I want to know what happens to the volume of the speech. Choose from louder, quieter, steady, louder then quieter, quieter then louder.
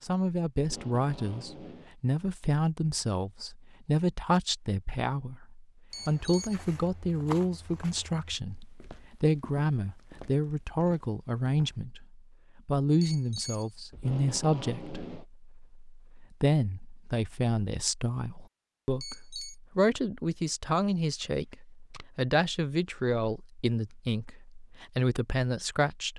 steady.